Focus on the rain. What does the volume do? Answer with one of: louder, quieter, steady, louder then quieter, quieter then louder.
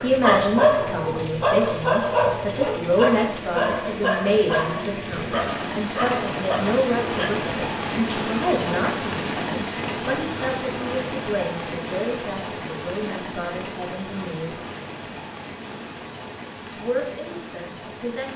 louder then quieter.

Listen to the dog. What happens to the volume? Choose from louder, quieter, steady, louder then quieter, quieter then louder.
quieter.